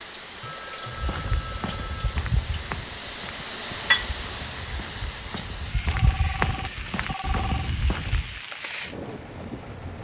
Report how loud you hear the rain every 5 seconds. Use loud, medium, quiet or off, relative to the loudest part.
loud, medium.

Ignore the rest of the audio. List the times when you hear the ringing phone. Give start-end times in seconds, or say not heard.
0.4-2.2, 6.0-7.7.